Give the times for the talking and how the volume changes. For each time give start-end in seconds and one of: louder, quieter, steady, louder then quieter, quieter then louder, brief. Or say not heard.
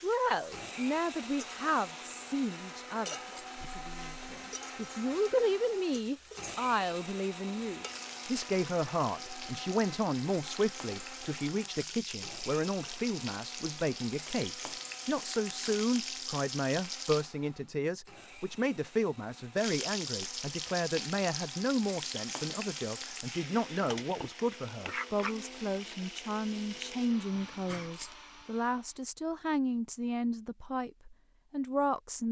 0.0-32.2 steady.